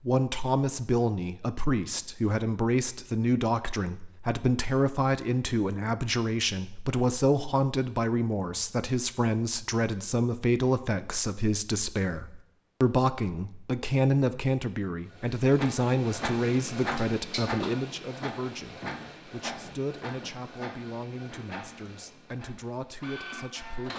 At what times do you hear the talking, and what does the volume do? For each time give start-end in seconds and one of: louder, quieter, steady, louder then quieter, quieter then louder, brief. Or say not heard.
0.0-23.9 quieter.